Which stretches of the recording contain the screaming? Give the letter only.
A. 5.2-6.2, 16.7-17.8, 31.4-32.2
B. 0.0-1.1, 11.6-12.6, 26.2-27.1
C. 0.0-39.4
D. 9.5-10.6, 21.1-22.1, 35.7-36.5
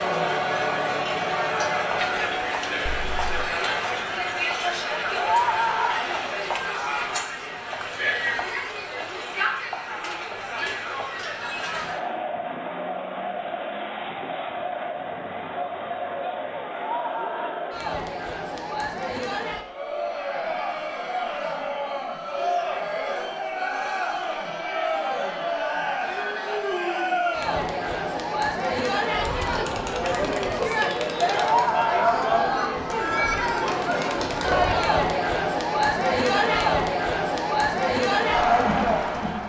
A.